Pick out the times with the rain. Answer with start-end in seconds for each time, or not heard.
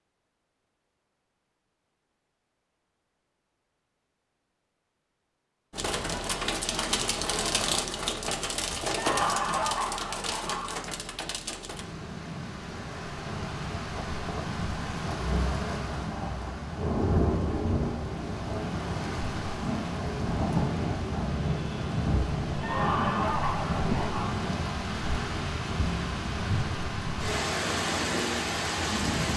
5.7-29.3.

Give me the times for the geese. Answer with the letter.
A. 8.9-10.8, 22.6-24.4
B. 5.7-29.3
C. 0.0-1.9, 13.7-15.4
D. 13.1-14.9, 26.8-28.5
A.